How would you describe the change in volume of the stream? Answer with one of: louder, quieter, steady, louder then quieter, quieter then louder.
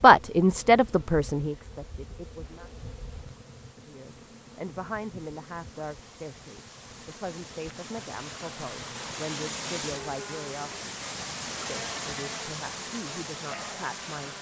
louder.